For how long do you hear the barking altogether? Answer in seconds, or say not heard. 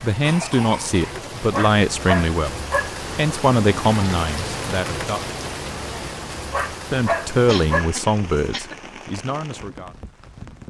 3 s.